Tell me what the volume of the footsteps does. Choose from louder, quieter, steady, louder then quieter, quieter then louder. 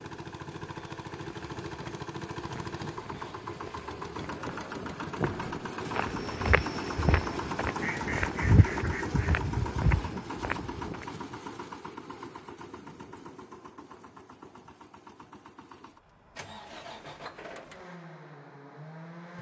louder.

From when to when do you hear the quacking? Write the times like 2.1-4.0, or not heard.
7.8-9.4.